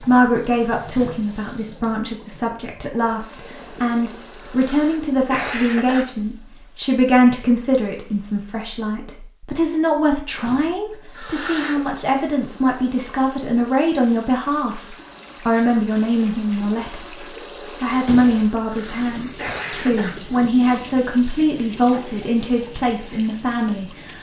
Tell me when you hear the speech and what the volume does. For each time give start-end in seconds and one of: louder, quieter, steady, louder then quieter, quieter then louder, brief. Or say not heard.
0.0-24.1 steady.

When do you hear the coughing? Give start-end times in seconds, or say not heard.
4.5-6.0, 11.2-11.9, 18.6-20.1.